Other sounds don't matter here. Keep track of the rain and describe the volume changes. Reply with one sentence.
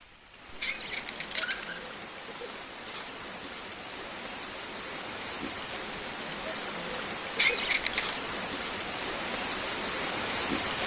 The loudness of the rain goes up.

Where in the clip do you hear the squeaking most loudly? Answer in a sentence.
The volume of the squeaking peaks at 8 seconds.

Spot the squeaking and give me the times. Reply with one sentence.
The squeaking can be heard from 0.6 to 1.9 s and from 7.3 to 8.2 s.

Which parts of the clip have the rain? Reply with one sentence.
You can hear the rain from 0.0 to 10.8 s.